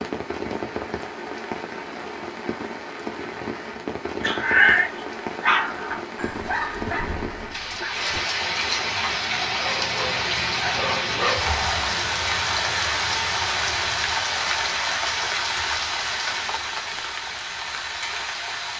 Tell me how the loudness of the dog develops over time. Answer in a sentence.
The volume of the dog goes down, then up.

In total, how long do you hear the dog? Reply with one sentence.
The dog can be heard for 7 seconds in total.